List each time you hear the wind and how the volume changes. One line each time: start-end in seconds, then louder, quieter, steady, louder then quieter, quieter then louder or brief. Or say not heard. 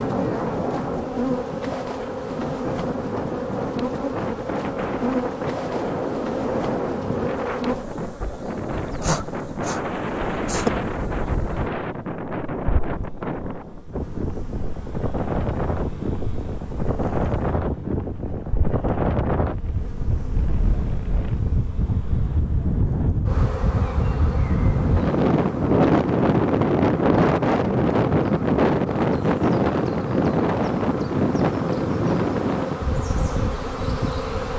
0.0-34.5 louder.